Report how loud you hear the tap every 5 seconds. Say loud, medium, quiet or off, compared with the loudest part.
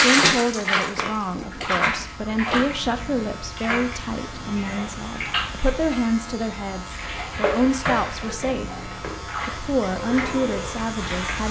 loud, medium, medium.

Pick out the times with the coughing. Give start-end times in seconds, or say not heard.
0.8-1.6, 7.8-8.6.